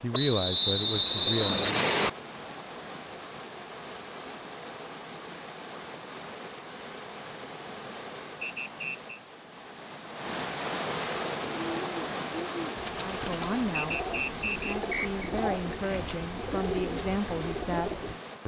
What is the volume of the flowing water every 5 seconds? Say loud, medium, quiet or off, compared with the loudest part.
medium, medium, loud, medium.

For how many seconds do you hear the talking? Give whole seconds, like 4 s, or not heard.
7 s.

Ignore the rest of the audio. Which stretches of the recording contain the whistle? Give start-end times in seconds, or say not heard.
0.1-2.1, 8.4-9.1, 13.7-15.2.